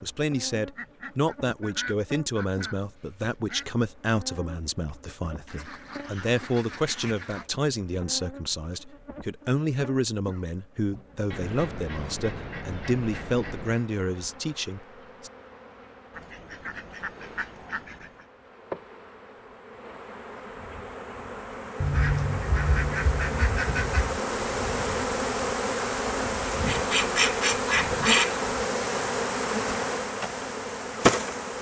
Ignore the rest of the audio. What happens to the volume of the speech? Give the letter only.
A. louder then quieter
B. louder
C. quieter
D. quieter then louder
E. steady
E.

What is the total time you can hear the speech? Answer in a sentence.
The speech can be heard for 15 seconds in total.